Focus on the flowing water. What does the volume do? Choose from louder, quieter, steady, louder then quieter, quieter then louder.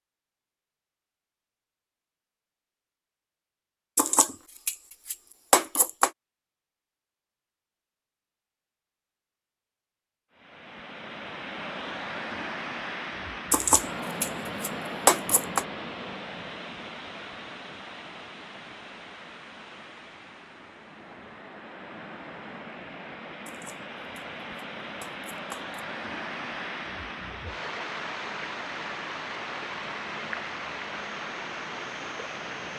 quieter then louder.